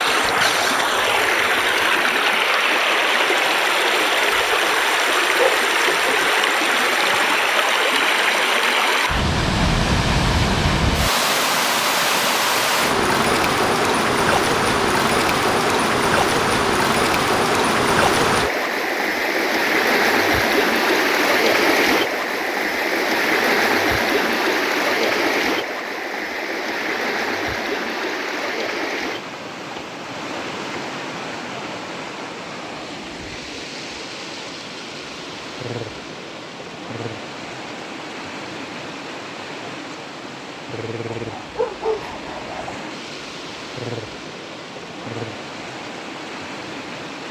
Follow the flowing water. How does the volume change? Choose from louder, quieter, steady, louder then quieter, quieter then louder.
quieter.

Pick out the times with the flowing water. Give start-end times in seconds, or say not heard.
0.0-47.2.